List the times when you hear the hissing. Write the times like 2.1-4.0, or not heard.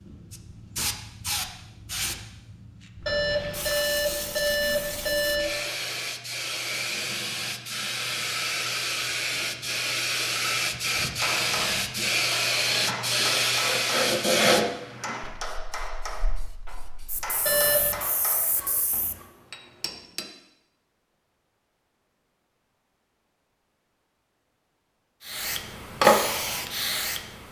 0.0-19.1, 25.2-27.4.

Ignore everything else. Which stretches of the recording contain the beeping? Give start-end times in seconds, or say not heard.
3.0-5.5, 17.4-18.0.